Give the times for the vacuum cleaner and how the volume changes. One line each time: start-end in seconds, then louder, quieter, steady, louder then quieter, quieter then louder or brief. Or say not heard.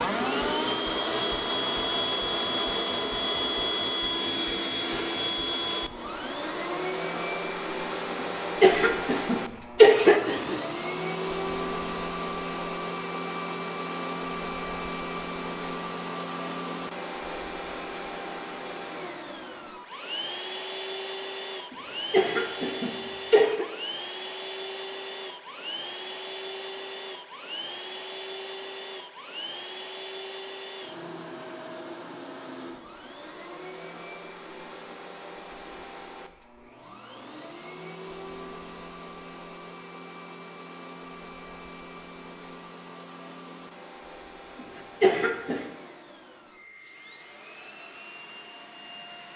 0.0-49.3 quieter.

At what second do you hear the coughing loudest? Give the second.
10 s.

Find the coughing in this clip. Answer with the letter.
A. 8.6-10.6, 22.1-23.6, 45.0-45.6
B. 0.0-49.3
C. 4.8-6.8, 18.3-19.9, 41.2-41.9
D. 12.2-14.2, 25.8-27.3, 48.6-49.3
A.